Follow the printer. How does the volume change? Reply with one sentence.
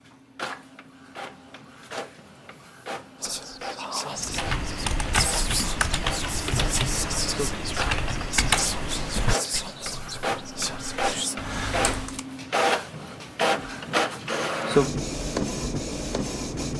The volume of the printer goes up.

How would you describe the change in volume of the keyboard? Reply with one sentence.
The loudness of the keyboard goes down.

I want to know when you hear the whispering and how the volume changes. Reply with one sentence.
You can hear the whispering from 3.2 to 11.3 s, at a steady volume.